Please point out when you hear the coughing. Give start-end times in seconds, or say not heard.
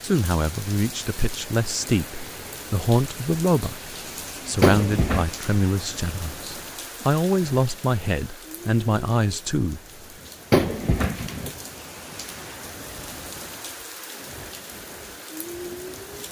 4.6-5.3, 10.5-11.5.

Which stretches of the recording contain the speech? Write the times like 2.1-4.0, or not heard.
0.0-9.8.